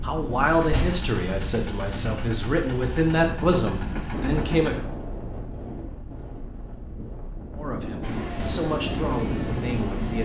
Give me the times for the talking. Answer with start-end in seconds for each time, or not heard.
0.0-4.8, 7.5-10.2.